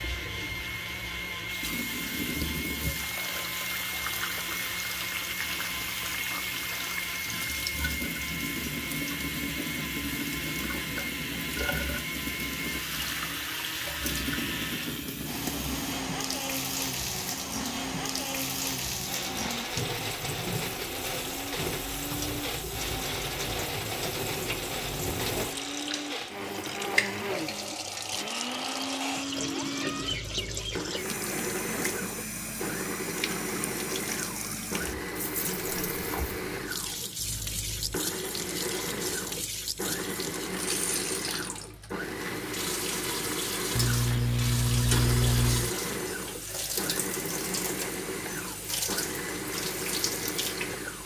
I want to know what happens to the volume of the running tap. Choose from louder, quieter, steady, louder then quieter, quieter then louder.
steady.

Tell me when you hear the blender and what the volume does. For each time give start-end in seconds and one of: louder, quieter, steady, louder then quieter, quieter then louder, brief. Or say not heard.
0.0-51.0 steady.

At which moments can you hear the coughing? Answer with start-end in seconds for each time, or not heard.
43.8-45.8.